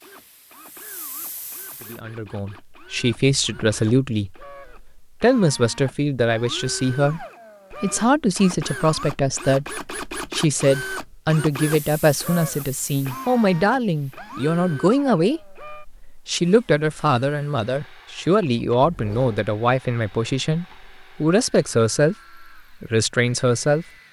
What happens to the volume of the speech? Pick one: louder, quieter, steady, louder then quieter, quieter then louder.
steady.